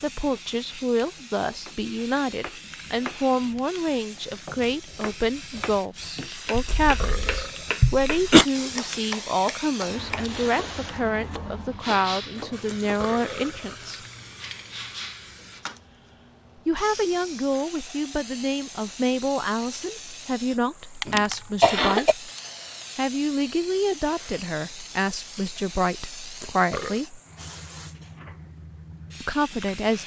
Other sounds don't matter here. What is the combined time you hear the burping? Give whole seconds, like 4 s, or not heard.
3 s.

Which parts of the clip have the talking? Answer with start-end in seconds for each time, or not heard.
0.0-14.0, 16.6-22.2, 22.9-27.2, 29.2-30.0.